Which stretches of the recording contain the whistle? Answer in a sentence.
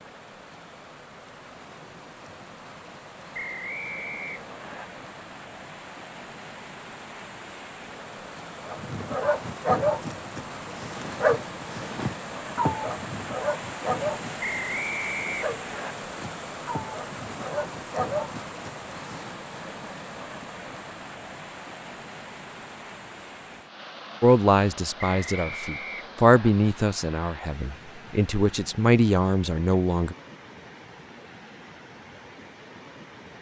You can hear the whistle from 3.3 to 4.8 s, from 14.4 to 15.9 s and from 25.1 to 26.5 s.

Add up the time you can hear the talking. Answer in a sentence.
The talking can be heard for 6 seconds in total.